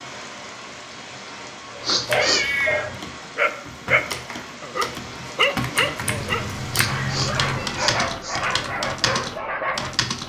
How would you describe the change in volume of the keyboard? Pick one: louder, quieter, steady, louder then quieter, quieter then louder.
louder.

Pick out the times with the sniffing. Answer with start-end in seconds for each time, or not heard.
1.8-2.5, 6.7-8.4.